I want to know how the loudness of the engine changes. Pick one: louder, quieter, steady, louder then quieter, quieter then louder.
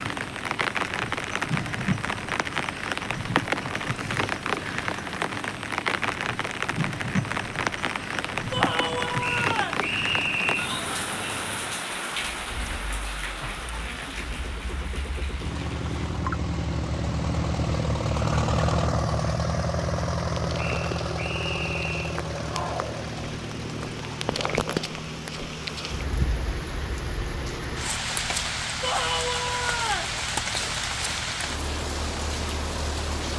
louder then quieter.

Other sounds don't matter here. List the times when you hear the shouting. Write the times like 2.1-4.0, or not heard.
8.5-9.8, 28.8-30.1.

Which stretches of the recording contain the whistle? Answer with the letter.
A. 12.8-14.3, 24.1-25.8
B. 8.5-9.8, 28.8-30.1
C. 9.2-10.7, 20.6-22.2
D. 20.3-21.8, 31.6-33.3
C.